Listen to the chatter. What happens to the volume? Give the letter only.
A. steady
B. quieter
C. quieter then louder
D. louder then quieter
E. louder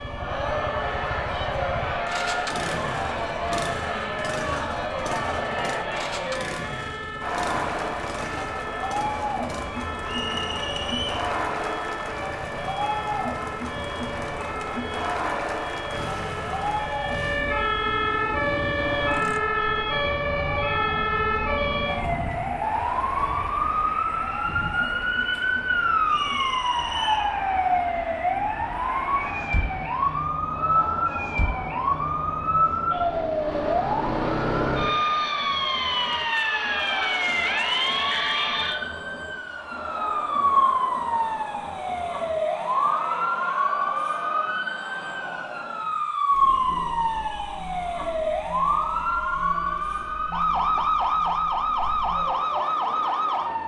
B.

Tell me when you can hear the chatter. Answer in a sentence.
You can hear the chatter from 0.1 to 53.6 s.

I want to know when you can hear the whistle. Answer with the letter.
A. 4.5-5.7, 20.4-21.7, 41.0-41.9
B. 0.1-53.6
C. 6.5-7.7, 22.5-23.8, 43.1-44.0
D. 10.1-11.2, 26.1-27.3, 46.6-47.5
D.